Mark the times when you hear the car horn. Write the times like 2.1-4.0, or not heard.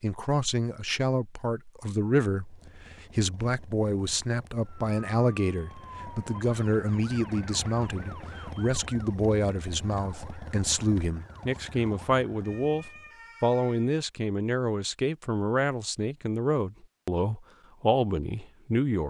not heard.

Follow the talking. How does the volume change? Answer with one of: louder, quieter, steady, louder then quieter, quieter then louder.
steady.